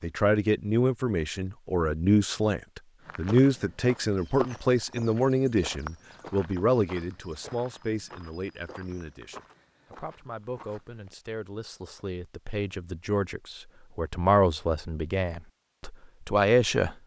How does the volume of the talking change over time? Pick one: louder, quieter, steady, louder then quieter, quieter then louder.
quieter then louder.